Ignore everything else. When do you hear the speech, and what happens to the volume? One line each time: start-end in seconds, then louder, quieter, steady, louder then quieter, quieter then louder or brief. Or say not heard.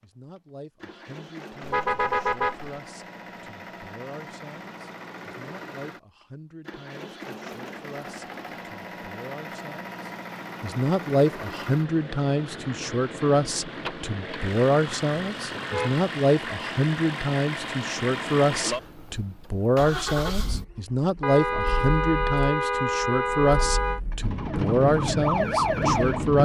0.0-26.4 louder.